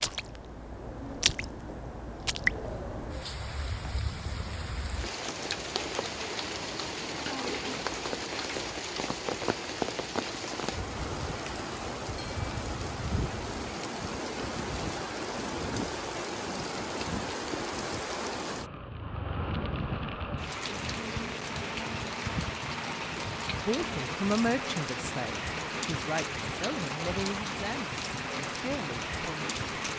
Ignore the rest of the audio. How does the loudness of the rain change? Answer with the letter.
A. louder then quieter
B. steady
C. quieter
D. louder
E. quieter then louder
B.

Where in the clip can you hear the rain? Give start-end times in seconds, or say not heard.
0.0-29.9.